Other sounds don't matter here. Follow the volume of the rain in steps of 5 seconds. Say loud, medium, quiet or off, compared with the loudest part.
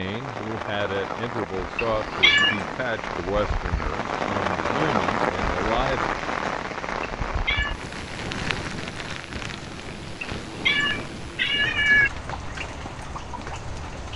loud, loud, medium.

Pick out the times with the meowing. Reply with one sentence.
The meowing can be heard from 1.8 to 2.8 s, from 7.0 to 7.8 s and from 10.2 to 12.1 s.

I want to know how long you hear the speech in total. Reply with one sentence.
You can hear the speech for 6 seconds altogether.